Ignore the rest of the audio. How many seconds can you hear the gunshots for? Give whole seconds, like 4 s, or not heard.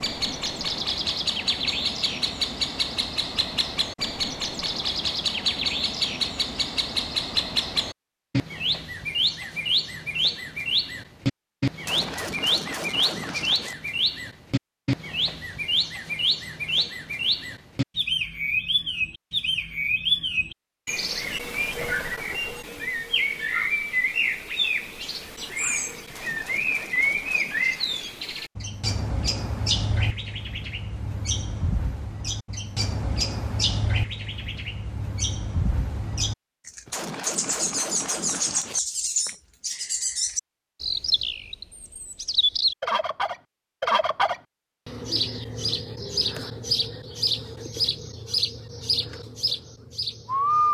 6 s.